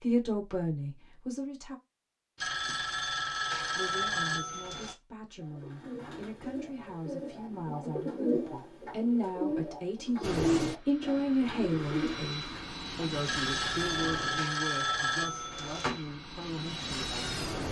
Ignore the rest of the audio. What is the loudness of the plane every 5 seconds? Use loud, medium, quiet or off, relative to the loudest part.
off, off, loud, loud.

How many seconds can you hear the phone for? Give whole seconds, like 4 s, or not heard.
5 s.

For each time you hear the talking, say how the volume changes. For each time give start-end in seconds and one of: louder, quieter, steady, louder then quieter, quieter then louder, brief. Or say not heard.
0.0-1.8 brief
3.8-17.5 louder then quieter.